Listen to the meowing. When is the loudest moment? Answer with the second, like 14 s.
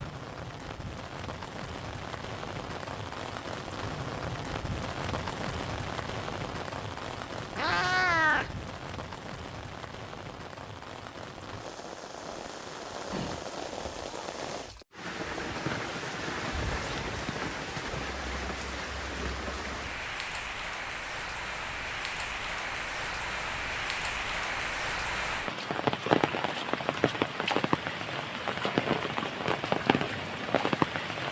8 s.